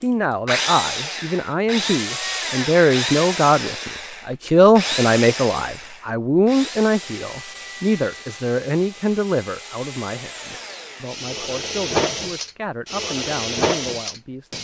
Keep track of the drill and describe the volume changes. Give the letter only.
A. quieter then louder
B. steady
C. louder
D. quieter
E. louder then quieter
A.